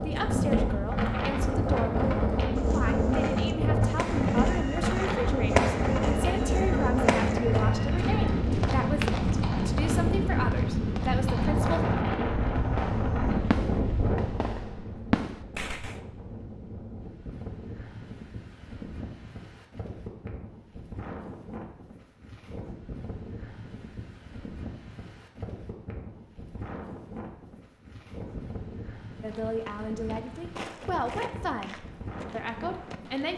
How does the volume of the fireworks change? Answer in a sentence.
The loudness of the fireworks goes down, then up.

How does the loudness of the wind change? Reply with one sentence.
The loudness of the wind goes down.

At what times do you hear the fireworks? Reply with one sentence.
You can hear the fireworks from 4.0 to 16.0 s.